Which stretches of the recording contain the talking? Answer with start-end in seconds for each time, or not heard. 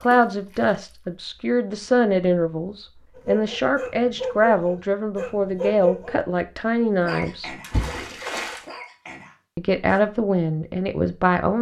0.0-7.5, 9.6-11.5.